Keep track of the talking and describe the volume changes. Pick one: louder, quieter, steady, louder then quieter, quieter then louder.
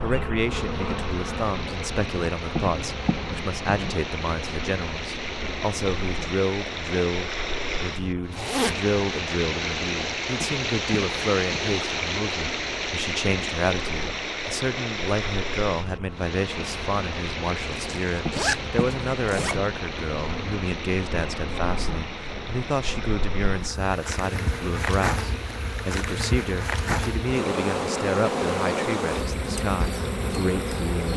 steady.